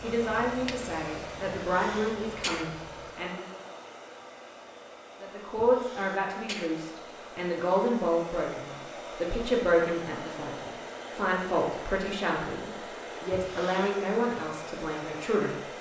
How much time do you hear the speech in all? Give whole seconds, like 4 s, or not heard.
14 s.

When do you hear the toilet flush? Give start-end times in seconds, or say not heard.
not heard.